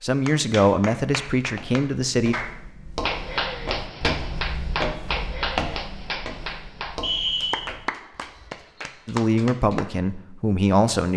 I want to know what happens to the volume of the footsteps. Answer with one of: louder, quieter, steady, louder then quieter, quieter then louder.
louder then quieter.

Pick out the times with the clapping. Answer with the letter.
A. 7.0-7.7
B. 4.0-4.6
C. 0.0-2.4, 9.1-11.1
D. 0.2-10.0
D.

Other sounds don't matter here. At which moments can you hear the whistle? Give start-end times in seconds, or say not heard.
7.0-7.7.